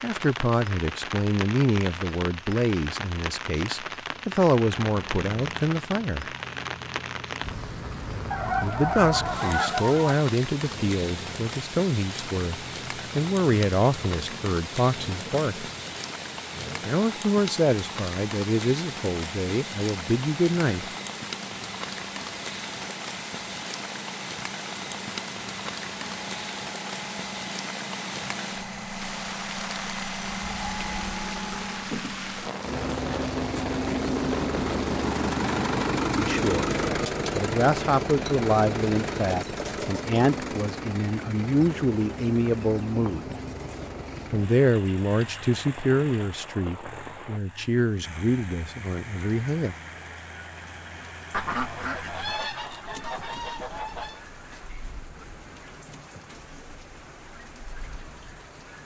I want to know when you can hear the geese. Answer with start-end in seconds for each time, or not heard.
8.3-10.2, 51.3-54.2.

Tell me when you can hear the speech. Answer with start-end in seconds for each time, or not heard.
0.0-6.3, 8.6-15.7, 16.9-20.9, 36.1-36.6, 37.4-43.2, 44.3-49.8.